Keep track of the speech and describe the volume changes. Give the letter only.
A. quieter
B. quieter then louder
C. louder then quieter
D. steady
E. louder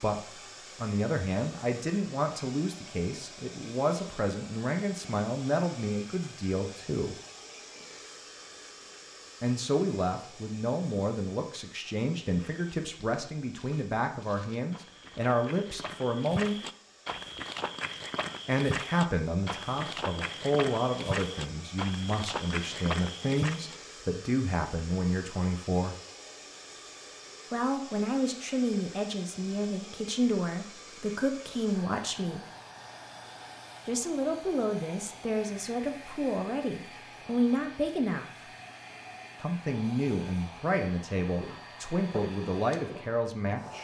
D.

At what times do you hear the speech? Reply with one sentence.
You can hear the speech from 0.0 to 7.2 s, from 9.4 to 16.6 s, from 18.4 to 25.9 s, from 27.5 to 32.5 s, from 33.9 to 38.2 s and from 39.4 to 43.8 s.